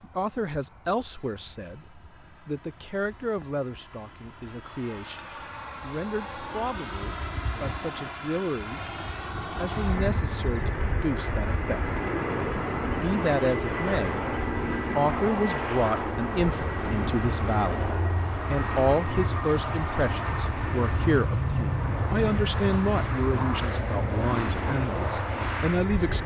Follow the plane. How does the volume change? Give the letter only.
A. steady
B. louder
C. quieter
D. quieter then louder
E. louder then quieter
B.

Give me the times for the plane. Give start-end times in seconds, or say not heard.
0.0-26.2.